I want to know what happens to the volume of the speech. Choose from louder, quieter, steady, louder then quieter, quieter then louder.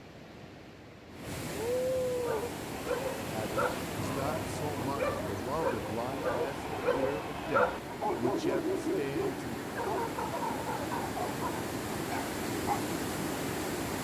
steady.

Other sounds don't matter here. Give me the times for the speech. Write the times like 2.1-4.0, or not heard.
3.3-9.6.